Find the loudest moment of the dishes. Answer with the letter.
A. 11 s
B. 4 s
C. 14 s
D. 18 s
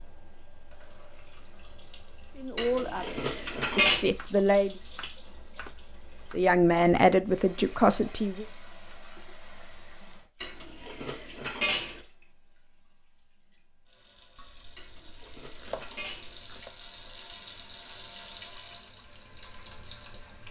B.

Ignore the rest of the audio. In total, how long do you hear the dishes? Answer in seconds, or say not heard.
5 s.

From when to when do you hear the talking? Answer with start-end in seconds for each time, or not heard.
2.4-4.7, 6.3-8.4.